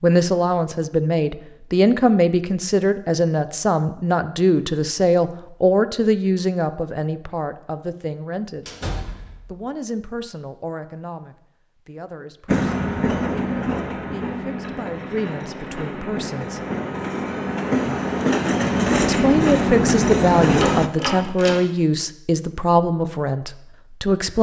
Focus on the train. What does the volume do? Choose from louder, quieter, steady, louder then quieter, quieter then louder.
quieter then louder.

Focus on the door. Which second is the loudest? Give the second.
21 s.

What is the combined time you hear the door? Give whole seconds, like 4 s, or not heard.
2 s.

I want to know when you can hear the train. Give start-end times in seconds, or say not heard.
12.4-20.9.